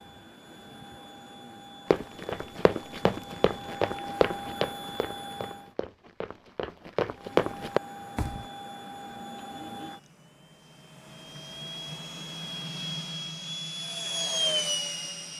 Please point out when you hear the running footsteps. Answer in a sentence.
The running footsteps can be heard from 1.9 to 8.4 s.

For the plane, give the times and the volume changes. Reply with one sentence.
You can hear the plane from 0.0 to 5.8 s, getting louder; and from 7.2 to 15.3 s, getting louder.